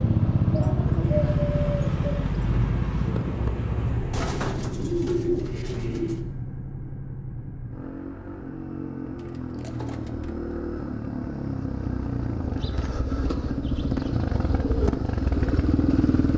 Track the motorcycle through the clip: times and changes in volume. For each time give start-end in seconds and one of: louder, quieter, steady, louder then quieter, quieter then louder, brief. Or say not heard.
0.0-16.3 quieter then louder.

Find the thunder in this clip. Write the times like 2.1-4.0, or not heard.
1.0-4.2.